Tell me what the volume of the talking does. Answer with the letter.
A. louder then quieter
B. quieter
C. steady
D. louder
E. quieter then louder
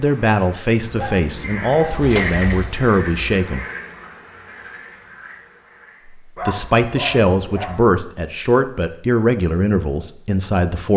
C.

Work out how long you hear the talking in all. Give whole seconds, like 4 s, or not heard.
8 s.